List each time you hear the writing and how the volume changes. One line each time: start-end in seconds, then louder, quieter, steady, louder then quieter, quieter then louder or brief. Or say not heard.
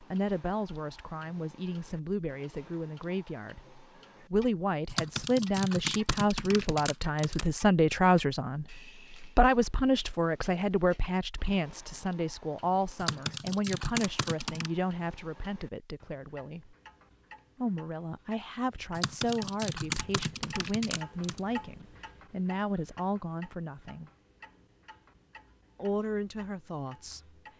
not heard.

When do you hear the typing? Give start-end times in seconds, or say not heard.
4.8-7.5, 13.0-14.7, 18.9-21.4.